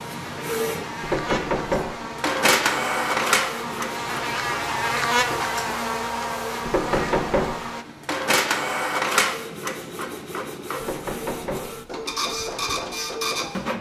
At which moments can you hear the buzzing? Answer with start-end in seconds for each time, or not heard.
0.0-7.8.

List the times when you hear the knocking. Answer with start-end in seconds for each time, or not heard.
1.0-1.9, 6.7-7.6, 10.8-11.8.